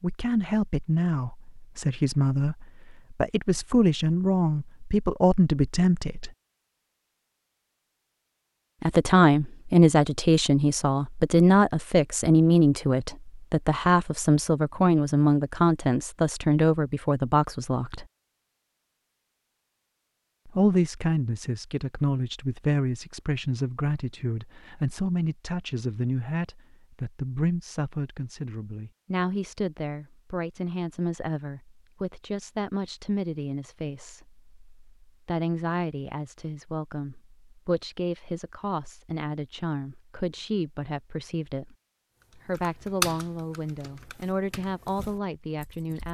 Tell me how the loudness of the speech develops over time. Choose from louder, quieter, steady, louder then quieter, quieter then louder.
quieter.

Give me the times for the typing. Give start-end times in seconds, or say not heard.
42.2-46.0.